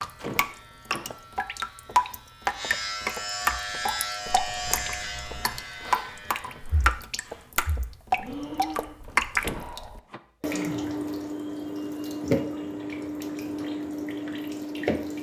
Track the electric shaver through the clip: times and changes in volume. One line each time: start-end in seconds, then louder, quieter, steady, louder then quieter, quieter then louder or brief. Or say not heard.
0.0-6.8 louder then quieter.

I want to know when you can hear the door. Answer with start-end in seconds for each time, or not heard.
0.1-1.1, 9.4-10.2.